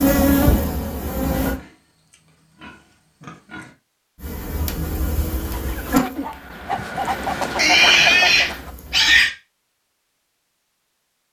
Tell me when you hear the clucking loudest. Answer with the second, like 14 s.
8 s.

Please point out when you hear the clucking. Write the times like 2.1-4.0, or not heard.
5.5-8.7.